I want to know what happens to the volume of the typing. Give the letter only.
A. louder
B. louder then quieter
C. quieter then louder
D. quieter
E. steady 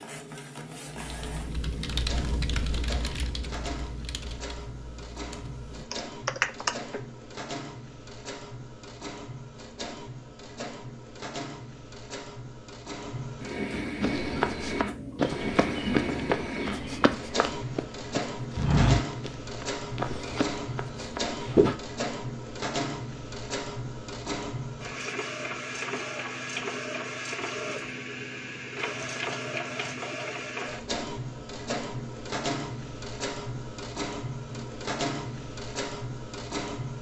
C.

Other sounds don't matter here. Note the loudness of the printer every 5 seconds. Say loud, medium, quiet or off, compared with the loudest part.
medium, medium, loud, loud, loud, loud, loud, loud.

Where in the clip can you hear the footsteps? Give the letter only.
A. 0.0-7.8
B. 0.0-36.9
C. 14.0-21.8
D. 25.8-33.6
C.